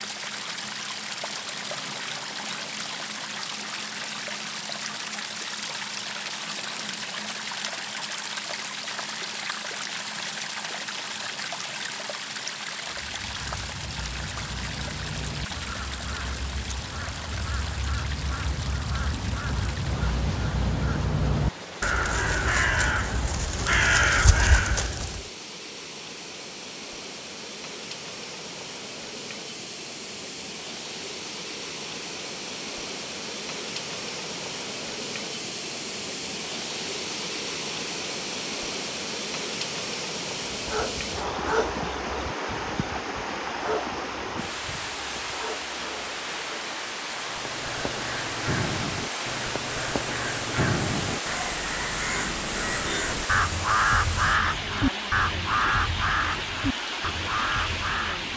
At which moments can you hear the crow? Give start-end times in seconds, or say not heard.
12.9-25.2, 47.2-58.3.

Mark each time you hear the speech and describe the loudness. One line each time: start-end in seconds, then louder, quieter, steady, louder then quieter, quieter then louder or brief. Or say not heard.
not heard.